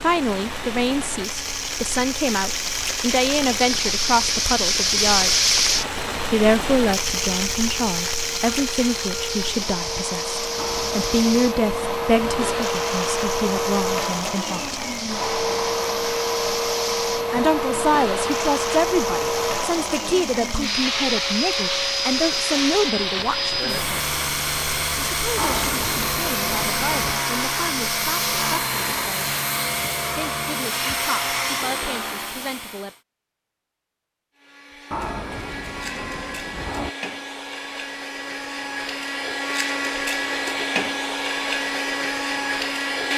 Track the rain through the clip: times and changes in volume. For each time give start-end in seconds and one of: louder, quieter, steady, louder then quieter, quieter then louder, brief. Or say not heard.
0.0-29.4 quieter.